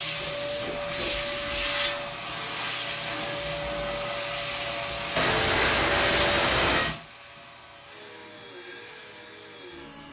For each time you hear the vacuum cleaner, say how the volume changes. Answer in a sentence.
You can hear the vacuum cleaner from 0.0 to 10.0 s, getting quieter.